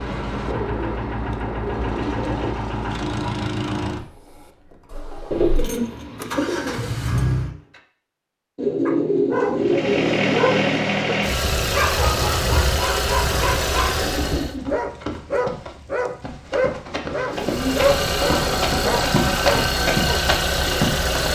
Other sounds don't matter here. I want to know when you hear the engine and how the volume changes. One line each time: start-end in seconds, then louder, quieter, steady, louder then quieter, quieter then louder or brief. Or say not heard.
0.0-7.8 quieter then louder
9.6-14.6 steady
17.3-21.3 steady.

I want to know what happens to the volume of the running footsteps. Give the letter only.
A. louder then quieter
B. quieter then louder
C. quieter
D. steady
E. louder
E.